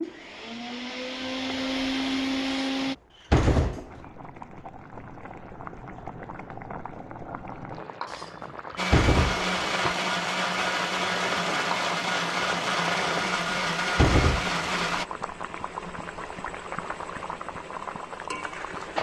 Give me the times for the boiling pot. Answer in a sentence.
The boiling pot can be heard from 0.0 to 18.9 s.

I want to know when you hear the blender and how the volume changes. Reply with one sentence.
The blender can be heard briefly from 0.0 to 3.0 s; and from 8.8 to 15.1 s, at a steady volume.